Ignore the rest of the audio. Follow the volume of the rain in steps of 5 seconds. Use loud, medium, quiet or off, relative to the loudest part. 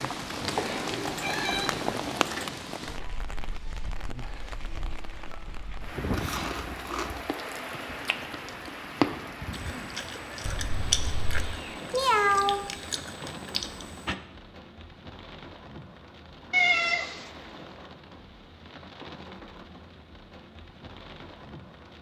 loud, loud, medium, medium, quiet.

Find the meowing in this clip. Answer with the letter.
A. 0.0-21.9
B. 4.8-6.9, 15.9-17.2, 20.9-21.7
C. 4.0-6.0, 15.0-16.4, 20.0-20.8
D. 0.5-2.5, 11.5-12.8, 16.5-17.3
D.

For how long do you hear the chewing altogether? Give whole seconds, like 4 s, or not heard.
8 s.